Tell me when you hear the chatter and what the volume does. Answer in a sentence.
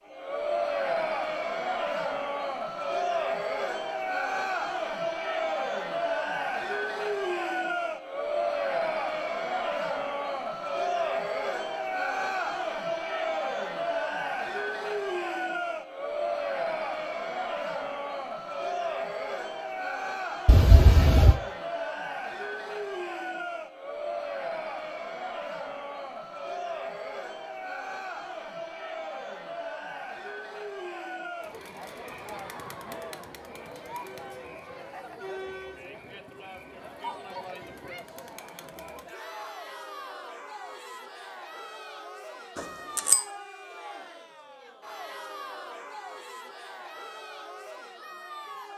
You can hear the chatter from 0.1 to 48.7 s, getting quieter.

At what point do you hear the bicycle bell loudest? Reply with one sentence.
The volume of the bicycle bell peaks at 21 seconds.